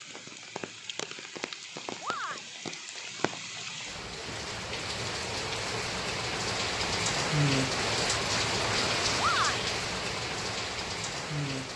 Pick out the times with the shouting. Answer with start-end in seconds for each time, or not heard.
2.0-2.6, 9.2-9.7.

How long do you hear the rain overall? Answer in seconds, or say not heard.
12 s.